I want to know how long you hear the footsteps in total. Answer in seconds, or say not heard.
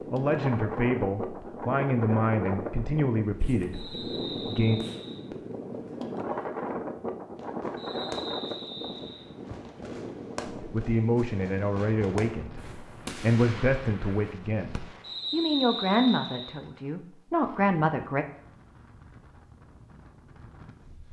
not heard.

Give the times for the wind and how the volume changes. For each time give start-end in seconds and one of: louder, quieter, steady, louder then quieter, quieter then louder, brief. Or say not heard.
0.0-21.0 quieter.